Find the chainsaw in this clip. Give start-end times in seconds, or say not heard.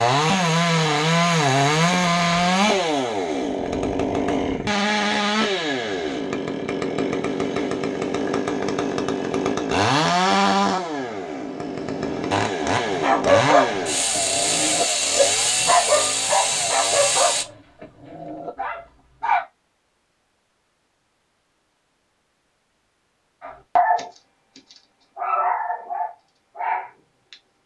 0.0-17.4.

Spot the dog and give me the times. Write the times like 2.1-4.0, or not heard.
12.8-19.4, 23.4-27.6.